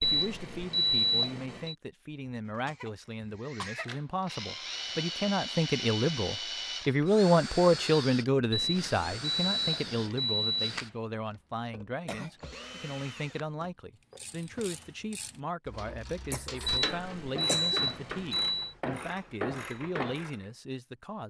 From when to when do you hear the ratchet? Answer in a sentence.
The ratchet can be heard from 14.2 to 20.4 s.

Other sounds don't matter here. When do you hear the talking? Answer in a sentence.
You can hear the talking from 0.0 to 21.2 s.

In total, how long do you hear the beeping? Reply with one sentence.
The beeping can be heard for 6 seconds in total.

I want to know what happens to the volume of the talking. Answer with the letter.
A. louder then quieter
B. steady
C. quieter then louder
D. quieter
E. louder
A.